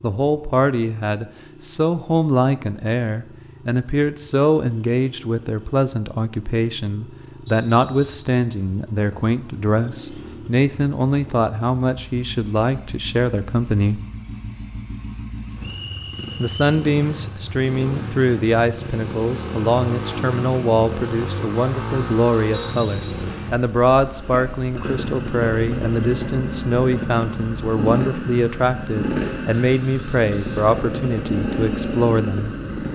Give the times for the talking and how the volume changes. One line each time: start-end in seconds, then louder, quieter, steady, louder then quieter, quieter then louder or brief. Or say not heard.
0.0-14.0 steady
16.4-32.5 steady.